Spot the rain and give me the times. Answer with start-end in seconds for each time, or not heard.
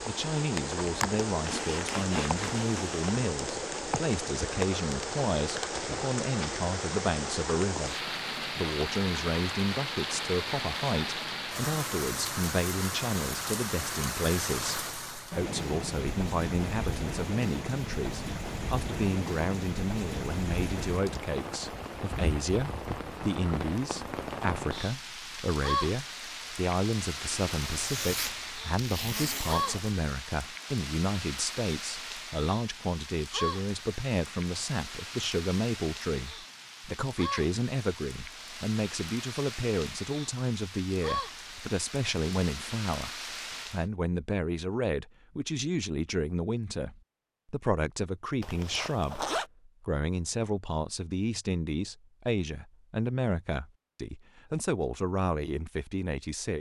0.0-43.9.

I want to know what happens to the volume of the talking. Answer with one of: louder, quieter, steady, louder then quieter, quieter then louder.
steady.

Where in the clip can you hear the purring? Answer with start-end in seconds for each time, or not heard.
not heard.